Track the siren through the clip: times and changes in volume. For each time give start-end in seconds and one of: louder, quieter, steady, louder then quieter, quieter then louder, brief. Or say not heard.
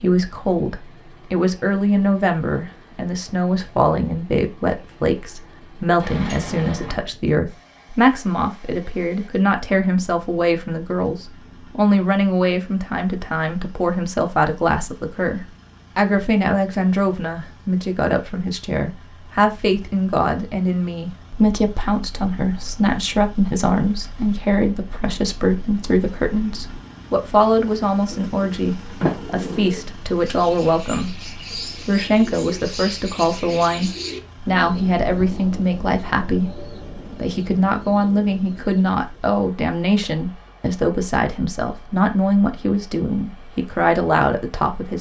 not heard.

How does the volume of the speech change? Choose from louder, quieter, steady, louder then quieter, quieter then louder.
steady.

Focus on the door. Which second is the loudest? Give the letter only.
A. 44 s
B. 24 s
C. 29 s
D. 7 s
C.